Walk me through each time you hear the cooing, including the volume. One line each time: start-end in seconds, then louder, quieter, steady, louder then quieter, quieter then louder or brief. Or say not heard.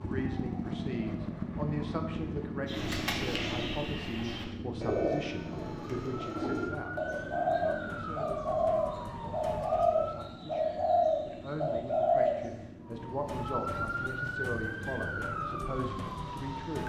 2.6-12.4 louder.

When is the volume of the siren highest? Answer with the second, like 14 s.
14 s.